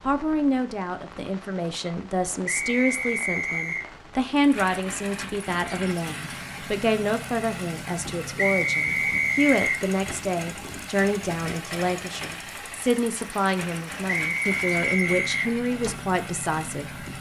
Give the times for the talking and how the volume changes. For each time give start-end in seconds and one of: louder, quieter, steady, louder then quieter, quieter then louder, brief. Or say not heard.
0.1-16.9 steady.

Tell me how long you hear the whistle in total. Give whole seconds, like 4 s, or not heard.
4 s.